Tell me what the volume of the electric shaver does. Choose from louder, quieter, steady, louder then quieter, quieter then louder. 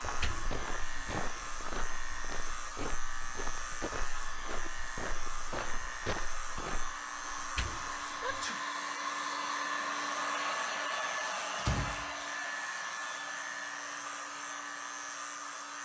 steady.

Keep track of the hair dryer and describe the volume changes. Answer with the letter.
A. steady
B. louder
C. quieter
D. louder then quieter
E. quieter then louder
D.